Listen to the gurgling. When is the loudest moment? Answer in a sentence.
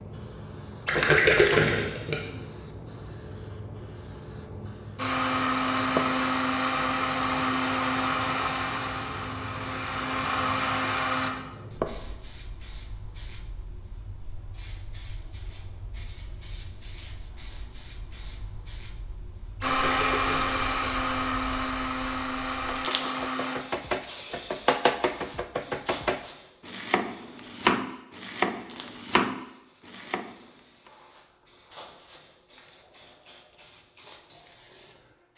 The volume of the gurgling peaks at 1 second.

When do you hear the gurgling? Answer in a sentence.
The gurgling can be heard from 0.8 to 2.1 s and from 19.6 to 20.8 s.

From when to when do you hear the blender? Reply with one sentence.
You can hear the blender from 5.0 to 11.3 s and from 19.6 to 23.6 s.